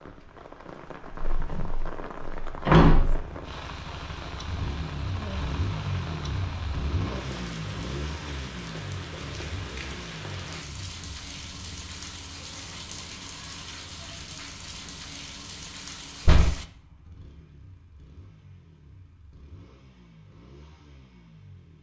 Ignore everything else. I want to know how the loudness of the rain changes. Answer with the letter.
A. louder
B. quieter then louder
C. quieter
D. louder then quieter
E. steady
E.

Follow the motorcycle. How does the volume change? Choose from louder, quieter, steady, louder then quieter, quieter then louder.
quieter.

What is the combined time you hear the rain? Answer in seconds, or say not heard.
17 s.